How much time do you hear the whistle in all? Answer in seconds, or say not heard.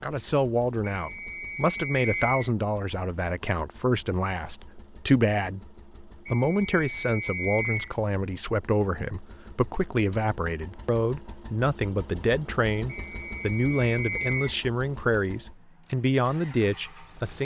5 s.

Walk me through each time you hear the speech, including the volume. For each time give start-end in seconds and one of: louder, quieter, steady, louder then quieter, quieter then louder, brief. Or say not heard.
0.0-17.3 steady.